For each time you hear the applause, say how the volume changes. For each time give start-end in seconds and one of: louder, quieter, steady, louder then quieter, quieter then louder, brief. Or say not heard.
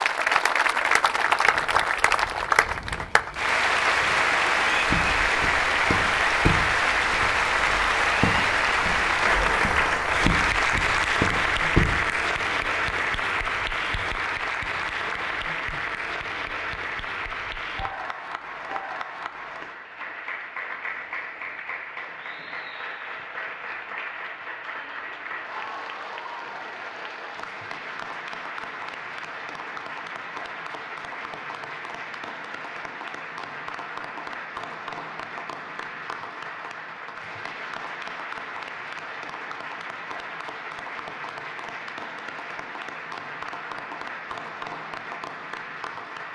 0.0-46.3 quieter.